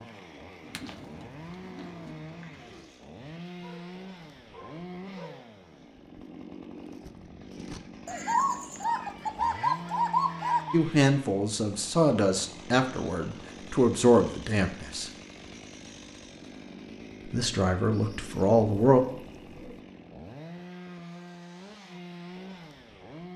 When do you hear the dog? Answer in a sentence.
The dog can be heard from 3.5 to 5.5 s.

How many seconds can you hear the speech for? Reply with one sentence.
You can hear the speech for 6 seconds altogether.